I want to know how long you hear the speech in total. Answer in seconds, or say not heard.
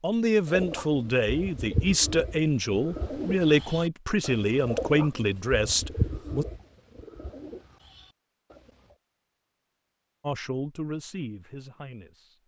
9 s.